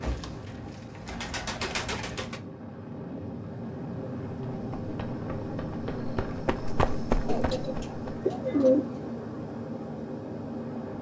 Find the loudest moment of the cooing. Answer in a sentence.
The volume of the cooing peaks at 9 seconds.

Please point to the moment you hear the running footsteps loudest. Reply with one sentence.
The loudest moment of the running footsteps is at 7 seconds.